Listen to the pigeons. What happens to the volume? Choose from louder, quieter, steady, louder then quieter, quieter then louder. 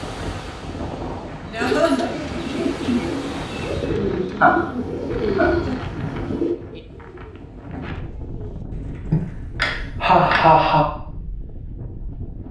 quieter.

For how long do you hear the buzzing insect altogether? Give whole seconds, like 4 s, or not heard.
4 s.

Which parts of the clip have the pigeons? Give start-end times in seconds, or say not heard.
1.6-9.9.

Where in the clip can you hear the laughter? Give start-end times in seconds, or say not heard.
1.5-2.1, 4.4-6.4, 9.1-10.8.